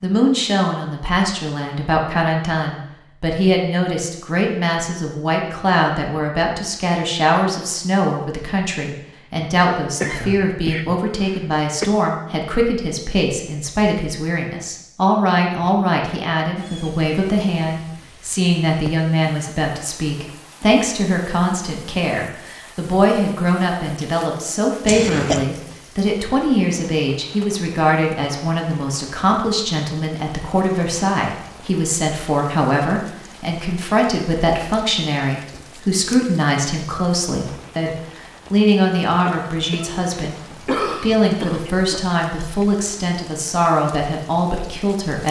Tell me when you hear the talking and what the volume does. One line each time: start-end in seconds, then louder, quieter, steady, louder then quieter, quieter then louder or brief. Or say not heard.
0.0-45.2 steady.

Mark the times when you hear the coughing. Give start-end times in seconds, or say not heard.
9.6-11.9, 24.9-25.4, 39.2-41.9.